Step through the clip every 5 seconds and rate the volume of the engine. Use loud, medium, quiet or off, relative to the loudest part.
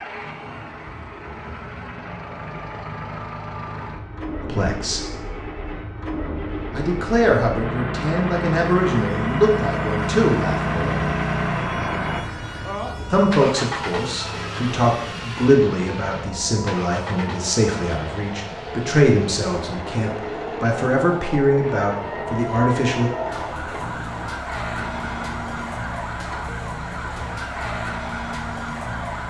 medium, loud, loud, medium, medium, quiet.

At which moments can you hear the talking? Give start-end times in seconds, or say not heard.
4.4-5.0, 6.7-11.1, 13.1-23.1.